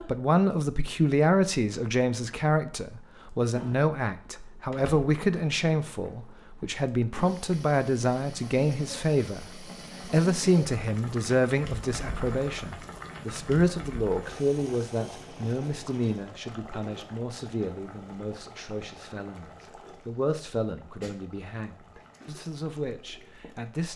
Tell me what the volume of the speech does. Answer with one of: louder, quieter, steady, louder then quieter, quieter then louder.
quieter.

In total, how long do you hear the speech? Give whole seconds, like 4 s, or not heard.
23 s.